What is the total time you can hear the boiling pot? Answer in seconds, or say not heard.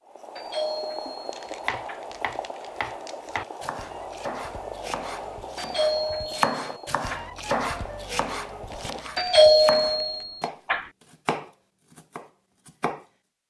9 s.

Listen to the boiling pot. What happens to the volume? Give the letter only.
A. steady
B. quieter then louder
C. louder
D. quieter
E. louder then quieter
D.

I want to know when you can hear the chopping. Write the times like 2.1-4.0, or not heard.
1.6-13.1.